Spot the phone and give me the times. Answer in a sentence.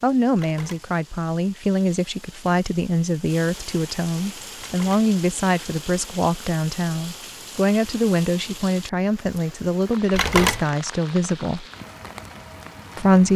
You can hear the phone from 0.3 to 0.9 s, from 4.6 to 5.1 s and from 10.1 to 10.7 s.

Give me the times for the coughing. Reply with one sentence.
The coughing can't be heard in this clip.